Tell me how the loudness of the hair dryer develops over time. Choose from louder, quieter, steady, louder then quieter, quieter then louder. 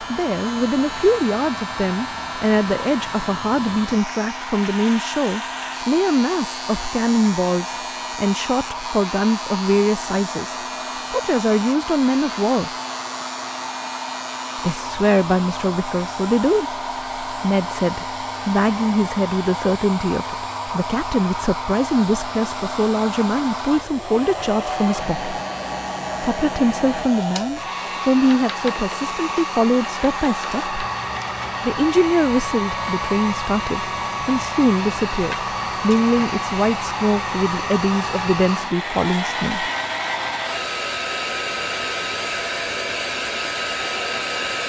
louder.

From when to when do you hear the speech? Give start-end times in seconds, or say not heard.
0.0-12.7, 14.6-25.4, 26.2-30.8, 31.6-39.7.